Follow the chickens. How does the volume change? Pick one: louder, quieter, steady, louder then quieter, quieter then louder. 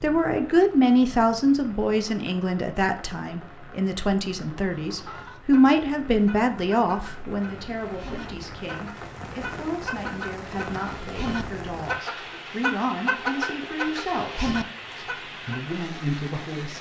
louder.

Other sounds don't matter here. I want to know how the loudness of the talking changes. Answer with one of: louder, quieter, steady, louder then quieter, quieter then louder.
quieter.